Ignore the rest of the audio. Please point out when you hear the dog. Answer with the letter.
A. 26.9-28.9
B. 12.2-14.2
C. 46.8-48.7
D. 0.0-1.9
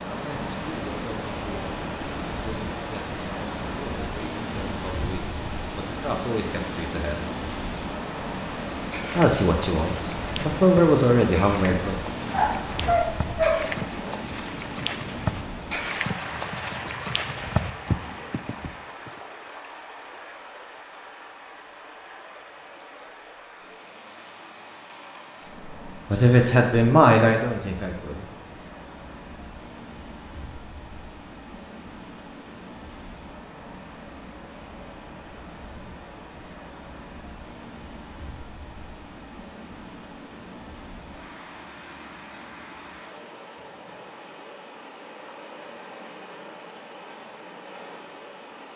B.